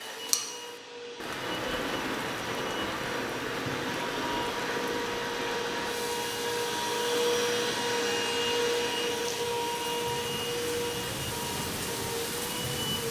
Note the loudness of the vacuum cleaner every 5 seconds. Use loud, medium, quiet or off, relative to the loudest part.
medium, loud, medium.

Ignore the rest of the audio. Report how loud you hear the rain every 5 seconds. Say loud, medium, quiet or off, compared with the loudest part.
loud, medium, loud.